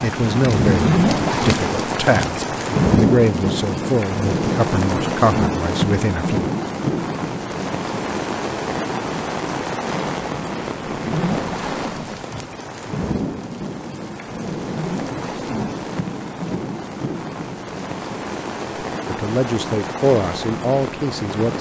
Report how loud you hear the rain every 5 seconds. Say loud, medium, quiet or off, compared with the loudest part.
loud, loud, medium, medium, medium.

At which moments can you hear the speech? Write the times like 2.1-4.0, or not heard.
0.0-6.5, 19.1-21.5.